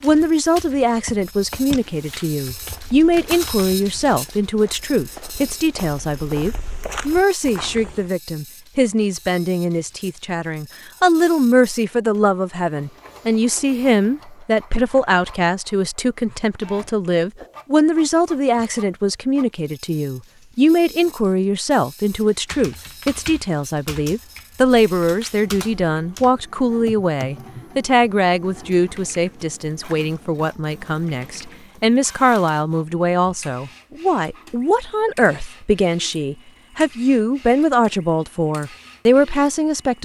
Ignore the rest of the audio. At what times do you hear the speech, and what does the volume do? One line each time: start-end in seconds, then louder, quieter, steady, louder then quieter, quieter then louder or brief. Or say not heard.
0.0-40.0 steady.